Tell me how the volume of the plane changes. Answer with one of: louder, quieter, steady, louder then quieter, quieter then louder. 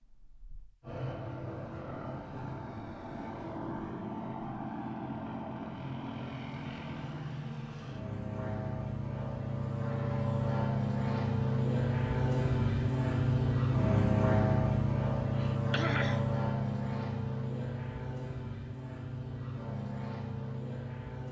louder then quieter.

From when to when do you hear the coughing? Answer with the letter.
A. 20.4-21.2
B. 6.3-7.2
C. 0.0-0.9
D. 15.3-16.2
D.